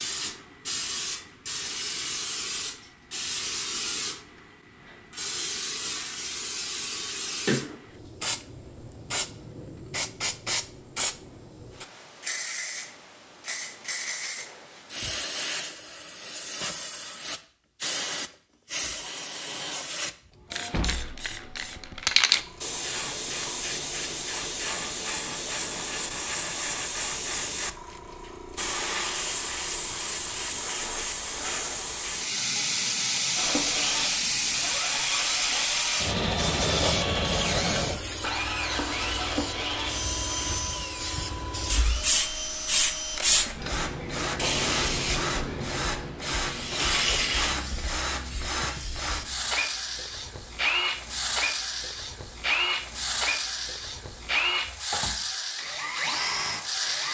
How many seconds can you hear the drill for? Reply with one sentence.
You can hear the drill for 24 seconds altogether.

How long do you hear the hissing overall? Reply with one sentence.
The hissing can be heard for 57 seconds in total.